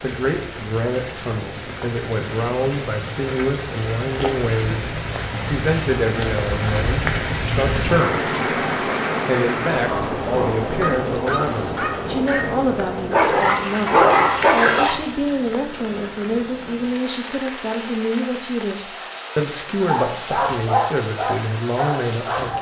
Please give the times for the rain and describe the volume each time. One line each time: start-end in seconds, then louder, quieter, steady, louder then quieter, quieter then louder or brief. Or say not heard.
0.0-22.5 louder then quieter.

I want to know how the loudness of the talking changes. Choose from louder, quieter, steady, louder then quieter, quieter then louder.
steady.